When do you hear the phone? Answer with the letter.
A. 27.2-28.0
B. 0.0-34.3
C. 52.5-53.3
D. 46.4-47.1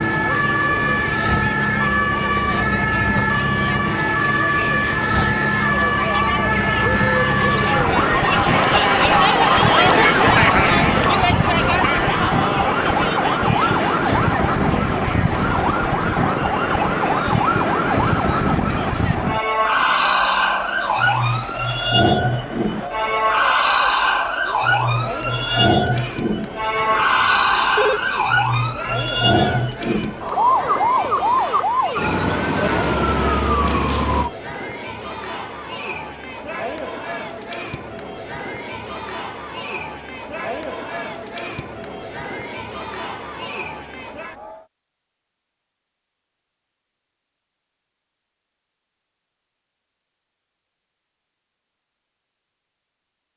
A.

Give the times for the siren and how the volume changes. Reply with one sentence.
You can hear the siren from 0.0 to 34.3 s, at a steady volume.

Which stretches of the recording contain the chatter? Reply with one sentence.
The chatter can be heard from 0.0 to 44.6 s.